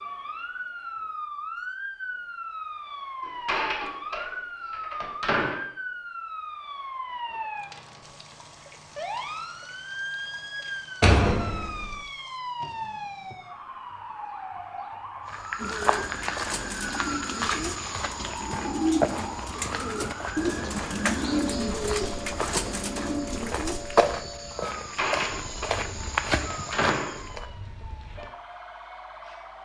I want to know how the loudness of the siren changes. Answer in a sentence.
The loudness of the siren goes down.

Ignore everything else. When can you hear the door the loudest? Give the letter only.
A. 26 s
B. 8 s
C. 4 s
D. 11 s
D.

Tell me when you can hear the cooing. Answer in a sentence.
You can hear the cooing from 15.6 to 24.1 s.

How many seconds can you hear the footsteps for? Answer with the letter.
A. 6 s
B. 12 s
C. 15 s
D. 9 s
B.